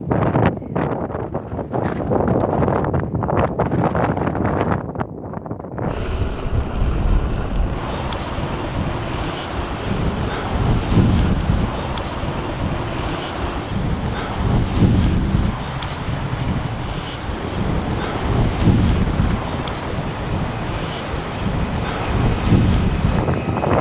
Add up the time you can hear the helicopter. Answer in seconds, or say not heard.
18 s.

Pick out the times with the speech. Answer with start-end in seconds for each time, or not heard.
not heard.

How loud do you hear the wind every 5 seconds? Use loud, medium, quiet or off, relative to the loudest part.
loud, medium, loud, loud, loud.